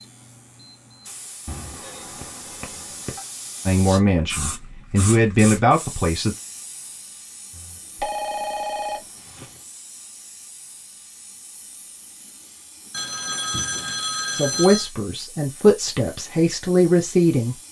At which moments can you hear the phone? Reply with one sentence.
You can hear the phone from 1.4 to 3.2 s, from 7.5 to 9.4 s and from 12.9 to 14.9 s.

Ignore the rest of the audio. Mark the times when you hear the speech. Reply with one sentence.
The speech can be heard from 3.6 to 6.3 s and from 14.3 to 17.6 s.